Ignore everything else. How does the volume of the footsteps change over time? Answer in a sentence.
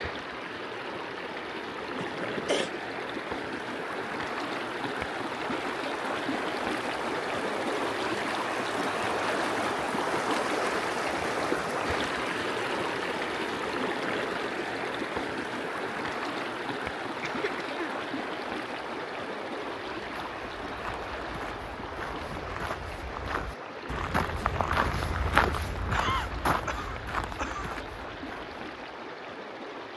The volume of the footsteps goes up, then down.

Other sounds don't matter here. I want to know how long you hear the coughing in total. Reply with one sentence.
You can hear the coughing for 3 seconds altogether.